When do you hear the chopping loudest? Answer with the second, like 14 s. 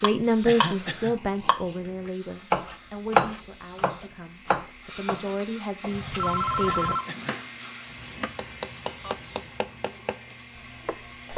3 s.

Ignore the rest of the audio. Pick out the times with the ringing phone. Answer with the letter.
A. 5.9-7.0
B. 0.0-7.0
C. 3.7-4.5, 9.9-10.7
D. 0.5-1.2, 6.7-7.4
A.